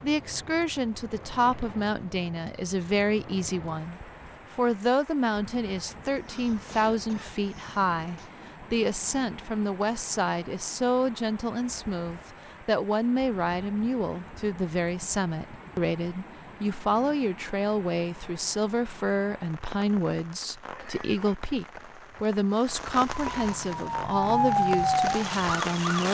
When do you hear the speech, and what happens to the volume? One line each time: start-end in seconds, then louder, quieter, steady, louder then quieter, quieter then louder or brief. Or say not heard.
0.0-26.0 steady.